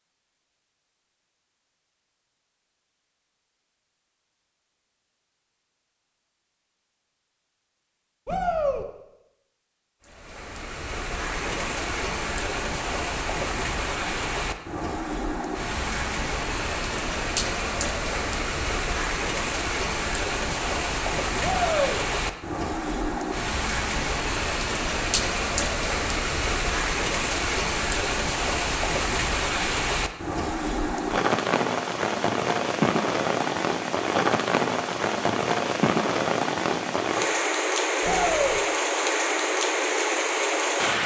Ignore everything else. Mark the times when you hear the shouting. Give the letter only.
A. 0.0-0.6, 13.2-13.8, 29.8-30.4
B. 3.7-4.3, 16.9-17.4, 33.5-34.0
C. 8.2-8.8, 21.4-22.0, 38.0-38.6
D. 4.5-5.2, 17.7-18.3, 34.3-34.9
C.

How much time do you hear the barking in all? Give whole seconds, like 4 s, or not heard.
not heard.